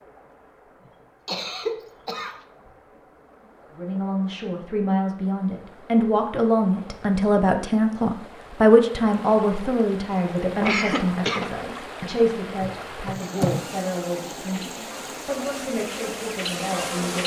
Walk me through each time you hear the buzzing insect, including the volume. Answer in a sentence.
You can hear the buzzing insect from 12.6 to 17.2 s, getting quieter then louder.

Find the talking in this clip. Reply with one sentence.
You can hear the talking from 3.8 to 17.2 s.